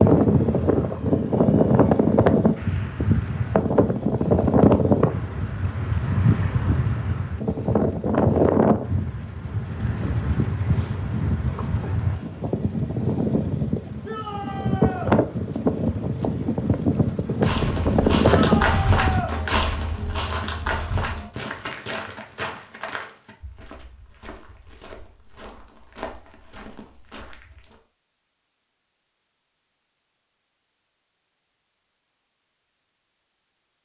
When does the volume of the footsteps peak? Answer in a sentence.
The loudest moment of the footsteps is at 19 seconds.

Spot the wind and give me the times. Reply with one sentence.
The wind can be heard from 0.0 to 19.3 s.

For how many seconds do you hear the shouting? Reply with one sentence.
The shouting can be heard for 2 seconds in total.